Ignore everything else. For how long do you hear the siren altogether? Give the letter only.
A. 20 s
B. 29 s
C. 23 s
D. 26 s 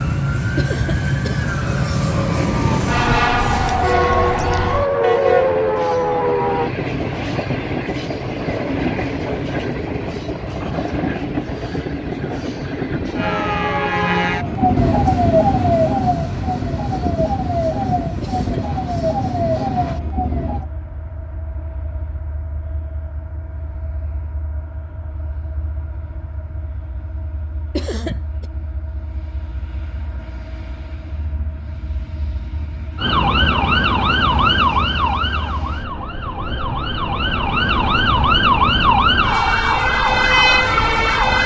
C.